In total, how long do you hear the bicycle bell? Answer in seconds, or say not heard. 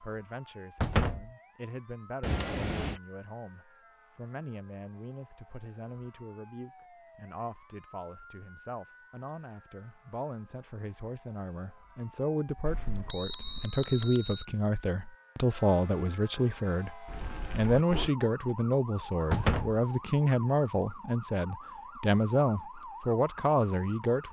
4 s.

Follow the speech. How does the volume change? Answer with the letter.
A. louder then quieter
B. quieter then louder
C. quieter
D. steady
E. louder
E.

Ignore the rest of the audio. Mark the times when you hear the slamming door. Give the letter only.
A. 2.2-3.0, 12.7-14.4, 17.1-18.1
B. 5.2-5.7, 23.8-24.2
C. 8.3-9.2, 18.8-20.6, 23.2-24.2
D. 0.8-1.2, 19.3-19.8
D.